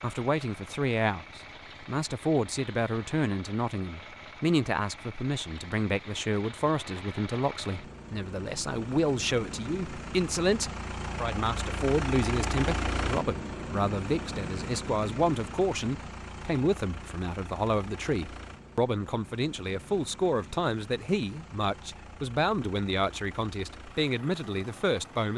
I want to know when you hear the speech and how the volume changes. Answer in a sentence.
You can hear the speech from 0.0 to 25.3 s, at a steady volume.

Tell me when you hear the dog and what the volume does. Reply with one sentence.
You can't hear the dog here.